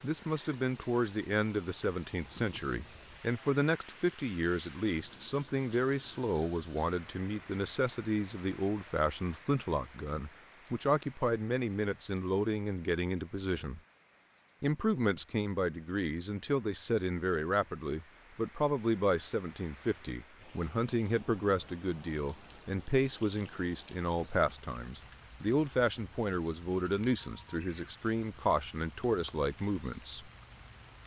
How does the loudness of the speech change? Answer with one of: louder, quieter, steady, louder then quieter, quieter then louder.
steady.